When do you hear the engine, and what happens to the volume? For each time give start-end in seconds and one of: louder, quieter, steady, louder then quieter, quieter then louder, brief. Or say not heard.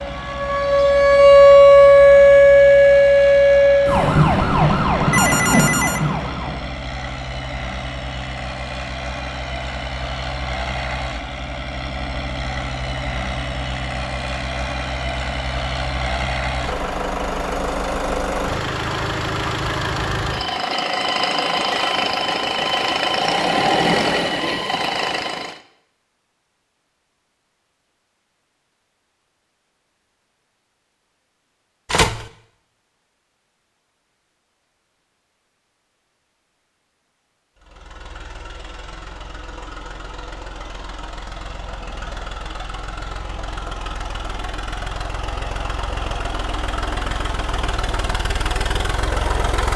0.0-25.6 louder
37.5-49.7 louder.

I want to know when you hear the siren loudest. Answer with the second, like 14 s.
2 s.